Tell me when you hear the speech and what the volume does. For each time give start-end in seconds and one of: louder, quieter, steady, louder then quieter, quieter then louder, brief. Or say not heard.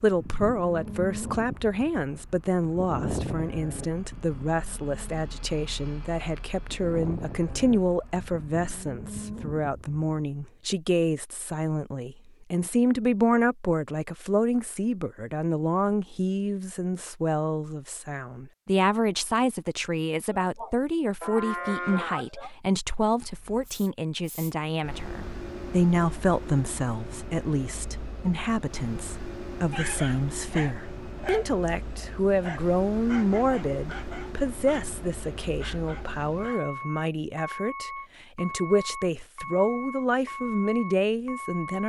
0.0-41.8 steady.